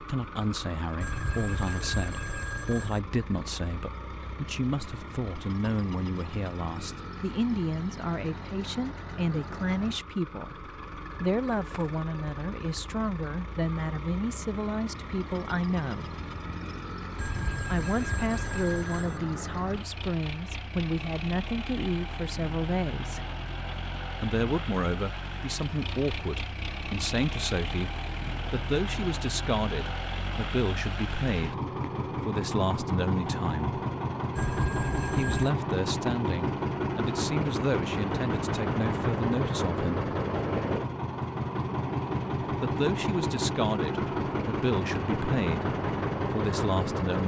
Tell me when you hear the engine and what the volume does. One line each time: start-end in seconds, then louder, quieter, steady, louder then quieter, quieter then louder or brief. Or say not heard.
0.0-47.2 louder.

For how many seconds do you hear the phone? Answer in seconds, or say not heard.
5 s.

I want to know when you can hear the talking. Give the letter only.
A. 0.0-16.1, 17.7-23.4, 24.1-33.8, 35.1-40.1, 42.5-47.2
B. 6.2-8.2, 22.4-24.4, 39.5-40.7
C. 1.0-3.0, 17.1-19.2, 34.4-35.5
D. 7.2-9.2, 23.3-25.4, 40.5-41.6
A.